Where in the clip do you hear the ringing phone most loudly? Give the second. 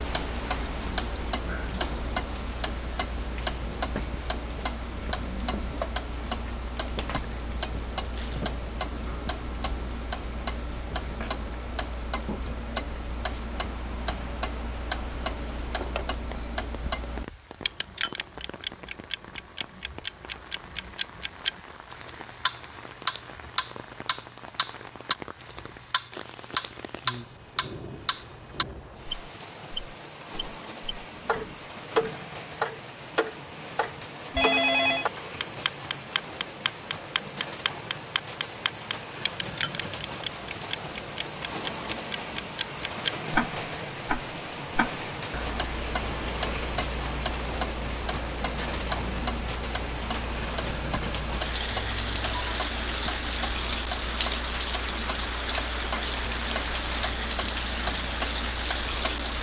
35 s.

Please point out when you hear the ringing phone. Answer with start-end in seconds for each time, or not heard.
15.8-16.6, 34.3-35.0, 51.9-52.6.